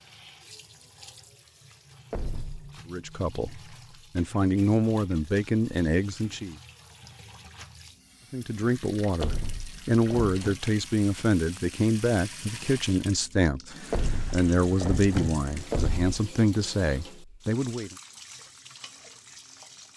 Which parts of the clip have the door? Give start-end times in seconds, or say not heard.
2.1-2.8, 9.2-10.6, 13.9-16.1.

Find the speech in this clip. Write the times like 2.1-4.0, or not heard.
2.9-6.5, 8.3-17.9.